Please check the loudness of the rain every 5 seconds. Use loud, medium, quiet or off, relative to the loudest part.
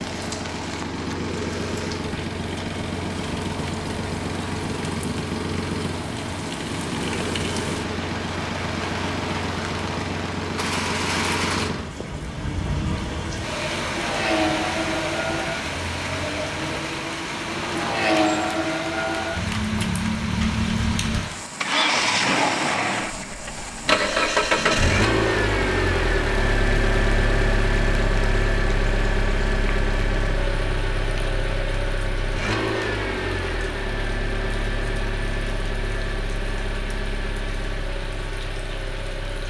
medium, loud, loud, loud, medium, medium, quiet, quiet.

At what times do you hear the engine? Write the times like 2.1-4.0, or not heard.
0.0-39.4.